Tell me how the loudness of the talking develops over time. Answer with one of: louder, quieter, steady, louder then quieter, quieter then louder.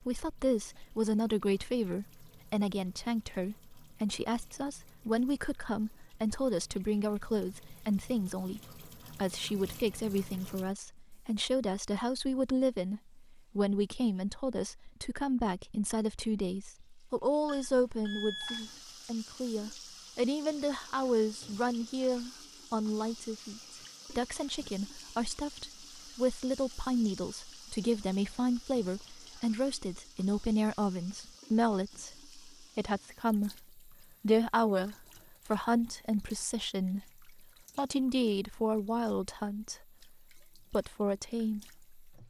steady.